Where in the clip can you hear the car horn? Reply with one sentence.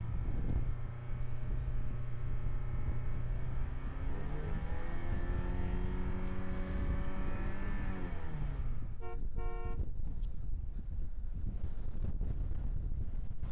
The car horn can be heard from 9.0 to 10.2 s.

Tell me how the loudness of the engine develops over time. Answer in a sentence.
The volume of the engine stays about the same.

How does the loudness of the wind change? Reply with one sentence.
The loudness of the wind stays about the same.